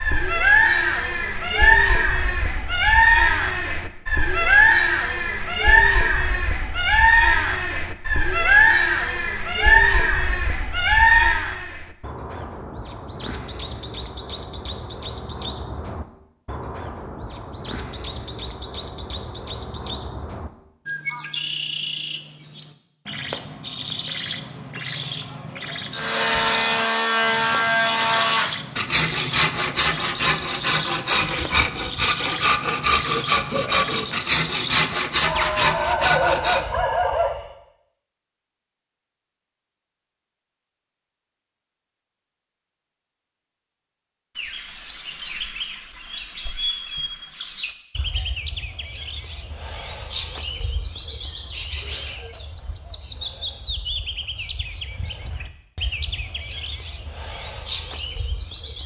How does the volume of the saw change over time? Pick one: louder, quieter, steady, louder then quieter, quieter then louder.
steady.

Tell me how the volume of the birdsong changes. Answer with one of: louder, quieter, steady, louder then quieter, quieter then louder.
quieter.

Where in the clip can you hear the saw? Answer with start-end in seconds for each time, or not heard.
25.9-36.6.